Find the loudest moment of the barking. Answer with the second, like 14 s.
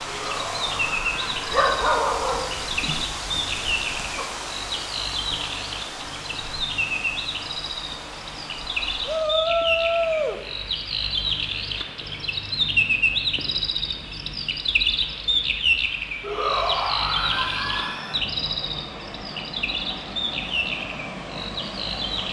2 s.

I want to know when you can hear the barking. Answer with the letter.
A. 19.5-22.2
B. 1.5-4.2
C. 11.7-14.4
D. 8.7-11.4
B.